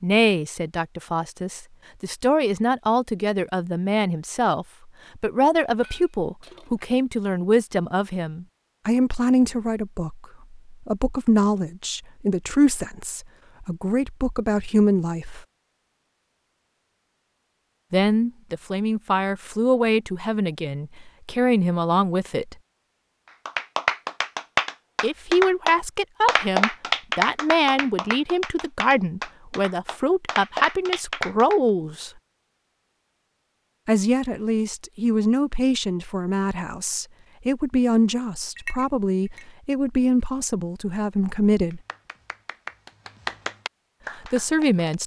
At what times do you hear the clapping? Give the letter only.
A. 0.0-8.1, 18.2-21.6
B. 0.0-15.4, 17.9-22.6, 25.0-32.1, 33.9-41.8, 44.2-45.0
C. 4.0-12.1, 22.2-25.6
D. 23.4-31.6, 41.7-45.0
D.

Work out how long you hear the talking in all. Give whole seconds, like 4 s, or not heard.
36 s.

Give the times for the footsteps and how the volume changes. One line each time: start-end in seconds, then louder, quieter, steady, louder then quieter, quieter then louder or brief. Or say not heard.
not heard.